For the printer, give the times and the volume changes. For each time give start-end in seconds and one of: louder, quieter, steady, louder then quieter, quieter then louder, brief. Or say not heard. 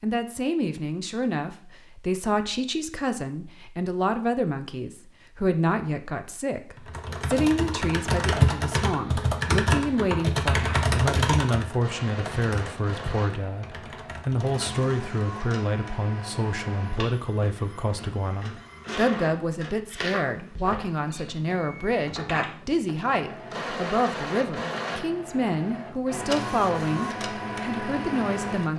10.5-28.7 louder.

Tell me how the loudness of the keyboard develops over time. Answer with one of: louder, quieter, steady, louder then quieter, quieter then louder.
quieter.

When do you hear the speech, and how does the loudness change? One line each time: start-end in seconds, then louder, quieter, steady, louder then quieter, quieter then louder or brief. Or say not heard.
0.0-28.7 steady.